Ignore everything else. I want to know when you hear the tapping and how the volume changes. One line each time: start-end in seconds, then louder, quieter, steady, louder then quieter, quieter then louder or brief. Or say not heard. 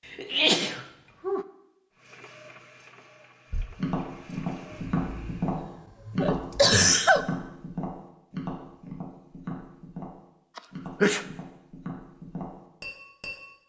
3.5-13.5 quieter.